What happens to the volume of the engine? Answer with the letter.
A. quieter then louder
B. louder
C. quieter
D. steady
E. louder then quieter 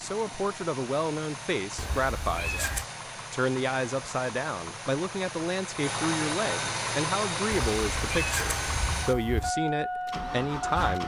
B.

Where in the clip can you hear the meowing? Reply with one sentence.
You can hear the meowing from 1.8 to 2.9 s and from 7.5 to 9.5 s.